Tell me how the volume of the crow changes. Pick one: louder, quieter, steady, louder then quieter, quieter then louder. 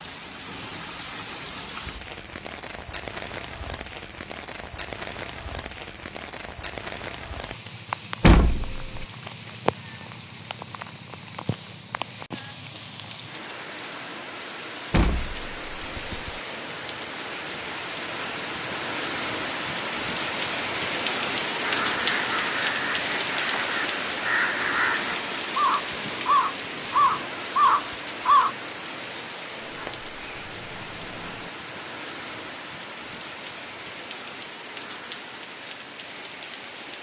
louder.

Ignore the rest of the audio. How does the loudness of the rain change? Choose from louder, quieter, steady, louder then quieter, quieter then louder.
louder then quieter.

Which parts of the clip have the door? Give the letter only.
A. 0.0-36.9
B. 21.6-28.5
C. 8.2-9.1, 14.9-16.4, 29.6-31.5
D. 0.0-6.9
C.